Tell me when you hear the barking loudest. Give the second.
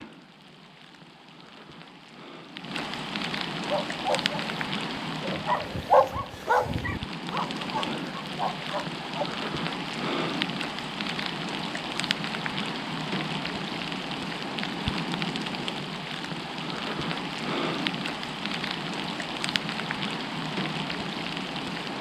6 s.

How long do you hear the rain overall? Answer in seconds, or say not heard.
22 s.